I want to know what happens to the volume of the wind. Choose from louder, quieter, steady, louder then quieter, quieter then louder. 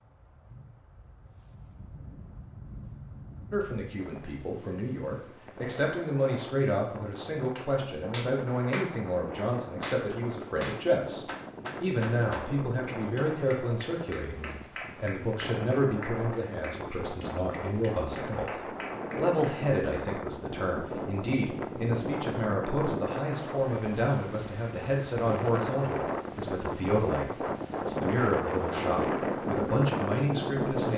louder.